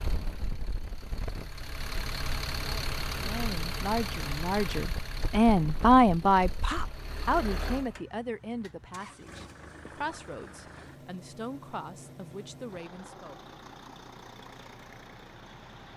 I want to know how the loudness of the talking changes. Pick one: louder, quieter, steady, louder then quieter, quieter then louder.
louder then quieter.